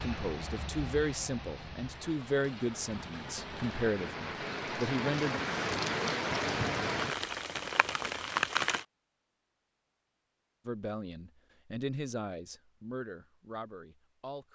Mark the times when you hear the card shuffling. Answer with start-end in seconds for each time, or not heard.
not heard.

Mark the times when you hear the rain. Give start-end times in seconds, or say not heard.
0.0-8.8.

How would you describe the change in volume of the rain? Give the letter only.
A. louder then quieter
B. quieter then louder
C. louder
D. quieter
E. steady
C.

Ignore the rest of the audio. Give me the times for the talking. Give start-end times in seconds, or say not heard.
0.0-5.4, 10.7-14.4.